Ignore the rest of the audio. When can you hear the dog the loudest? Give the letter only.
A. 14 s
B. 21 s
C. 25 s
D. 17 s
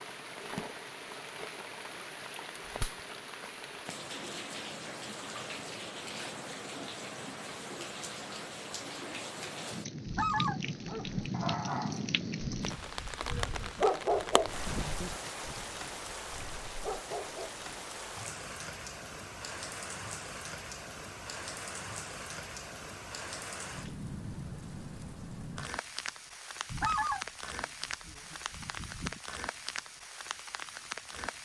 A.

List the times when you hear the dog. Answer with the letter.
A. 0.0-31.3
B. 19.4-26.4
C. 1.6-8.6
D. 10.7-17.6
D.